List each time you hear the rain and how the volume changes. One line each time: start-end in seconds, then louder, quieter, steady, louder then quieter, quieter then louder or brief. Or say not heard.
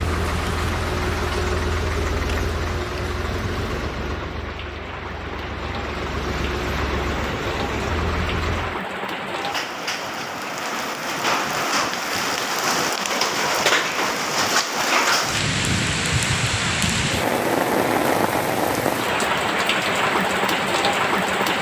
0.0-21.5 louder.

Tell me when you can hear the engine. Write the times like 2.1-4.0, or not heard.
0.0-8.8.